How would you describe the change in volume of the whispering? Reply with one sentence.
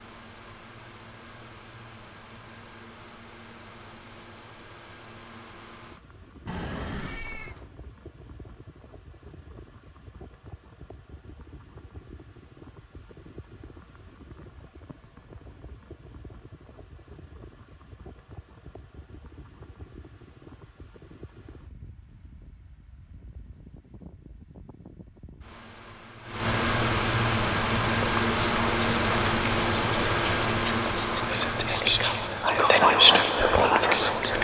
The loudness of the whispering goes up.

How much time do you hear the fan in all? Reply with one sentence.
The fan can be heard for 34 seconds in total.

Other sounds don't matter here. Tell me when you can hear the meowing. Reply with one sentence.
You can hear the meowing from 6.5 to 7.7 s.